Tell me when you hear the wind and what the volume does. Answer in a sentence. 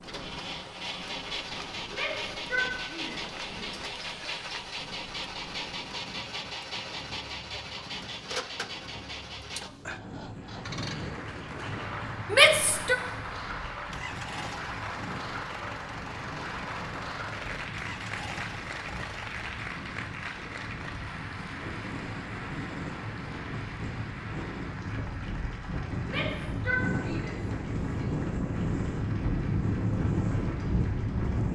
The wind can be heard from 0.0 to 31.5 s, getting louder.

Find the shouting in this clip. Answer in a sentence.
You can hear the shouting from 1.9 to 3.6 s, from 12.3 to 12.9 s and from 26.1 to 28.1 s.